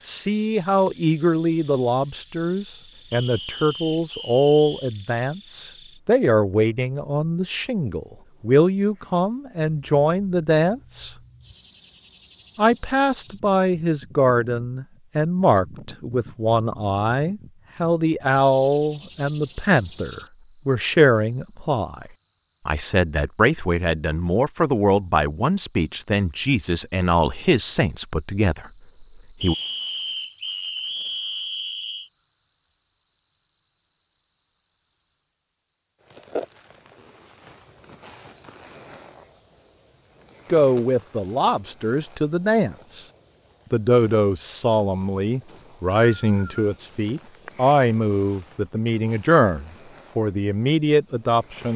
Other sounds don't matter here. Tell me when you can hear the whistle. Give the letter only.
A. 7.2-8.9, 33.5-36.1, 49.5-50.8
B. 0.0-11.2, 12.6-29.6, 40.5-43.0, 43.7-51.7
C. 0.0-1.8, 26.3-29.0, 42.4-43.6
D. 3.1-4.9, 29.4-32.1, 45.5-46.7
D.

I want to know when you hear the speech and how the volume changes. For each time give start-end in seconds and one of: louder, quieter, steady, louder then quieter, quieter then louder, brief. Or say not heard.
0.0-11.2 steady
12.6-29.6 steady
40.5-43.0 brief
43.7-51.7 steady.